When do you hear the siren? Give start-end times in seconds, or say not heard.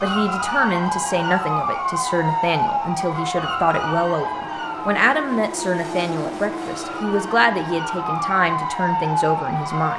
0.0-9.9.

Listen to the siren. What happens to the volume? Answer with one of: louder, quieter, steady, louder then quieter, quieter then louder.
quieter then louder.